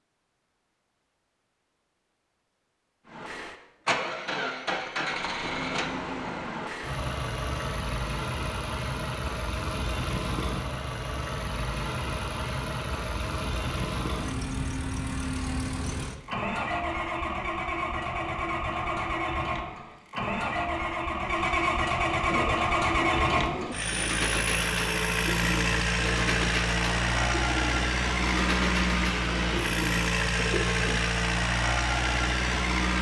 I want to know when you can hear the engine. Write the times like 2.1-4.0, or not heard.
3.0-32.9.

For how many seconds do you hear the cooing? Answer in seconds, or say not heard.
9 s.